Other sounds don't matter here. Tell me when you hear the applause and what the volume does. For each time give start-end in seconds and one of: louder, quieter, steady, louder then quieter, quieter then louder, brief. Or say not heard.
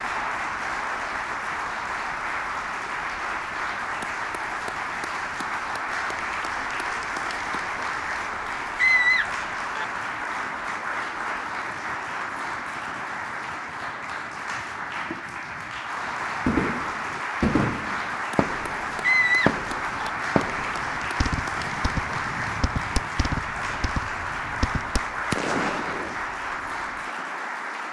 0.0-27.8 steady.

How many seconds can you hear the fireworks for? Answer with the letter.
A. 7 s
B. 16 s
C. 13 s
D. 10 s
D.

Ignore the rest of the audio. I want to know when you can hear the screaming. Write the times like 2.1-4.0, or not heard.
8.8-9.8, 19.0-20.1.